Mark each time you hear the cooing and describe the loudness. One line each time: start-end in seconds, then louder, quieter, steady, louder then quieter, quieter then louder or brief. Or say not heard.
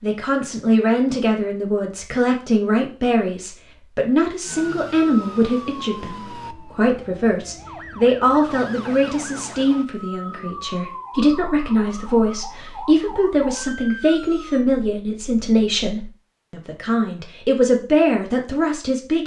not heard.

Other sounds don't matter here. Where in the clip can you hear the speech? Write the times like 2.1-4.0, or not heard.
0.0-19.2.